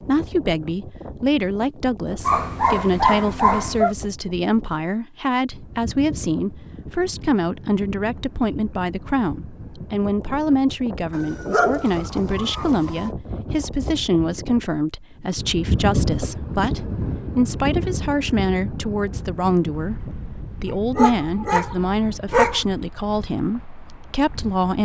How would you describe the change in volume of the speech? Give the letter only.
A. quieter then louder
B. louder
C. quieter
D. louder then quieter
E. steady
E.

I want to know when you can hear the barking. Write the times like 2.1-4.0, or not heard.
2.2-4.0, 11.1-13.1, 20.9-22.6.